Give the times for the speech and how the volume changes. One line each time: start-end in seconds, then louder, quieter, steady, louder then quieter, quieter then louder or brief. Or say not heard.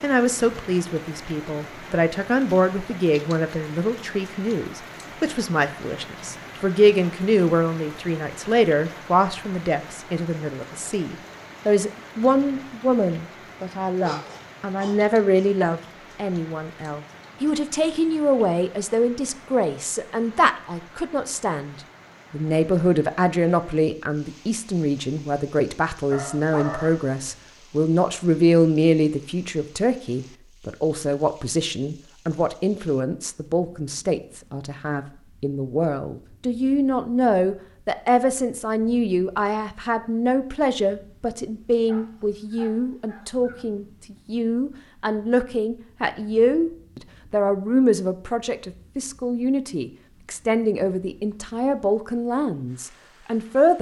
0.0-53.7 steady.